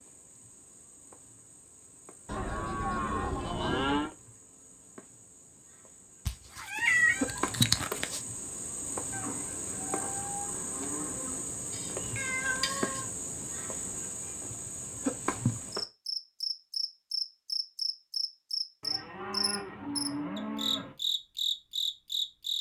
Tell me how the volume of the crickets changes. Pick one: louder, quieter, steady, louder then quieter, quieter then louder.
louder.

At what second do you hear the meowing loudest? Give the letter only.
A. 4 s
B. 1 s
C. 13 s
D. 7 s
D.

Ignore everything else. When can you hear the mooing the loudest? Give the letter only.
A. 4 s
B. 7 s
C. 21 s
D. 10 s
A.